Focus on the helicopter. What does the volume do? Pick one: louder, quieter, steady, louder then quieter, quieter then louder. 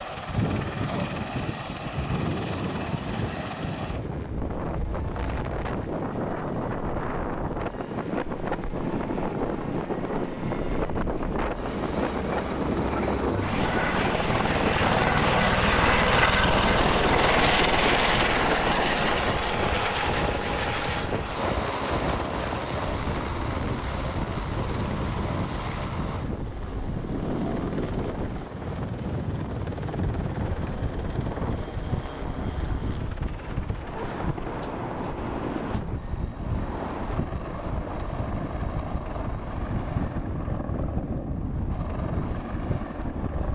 louder then quieter.